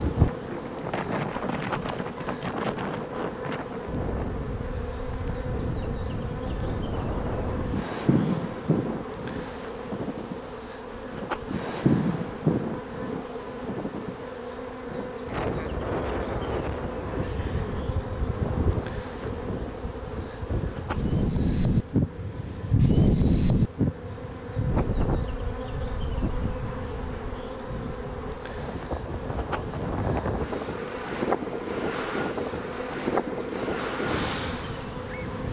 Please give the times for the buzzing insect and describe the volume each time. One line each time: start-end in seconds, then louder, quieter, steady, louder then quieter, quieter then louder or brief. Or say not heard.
0.0-35.4 steady.